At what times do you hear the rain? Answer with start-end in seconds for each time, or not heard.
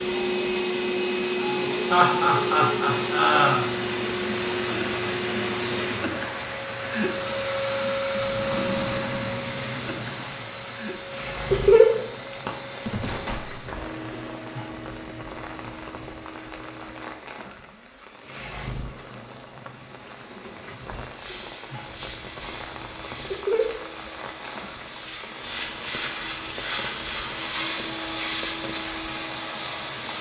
0.0-30.1.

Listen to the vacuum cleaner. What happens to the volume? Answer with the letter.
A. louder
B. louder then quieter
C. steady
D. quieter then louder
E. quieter
D.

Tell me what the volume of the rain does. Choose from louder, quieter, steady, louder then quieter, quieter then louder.
quieter.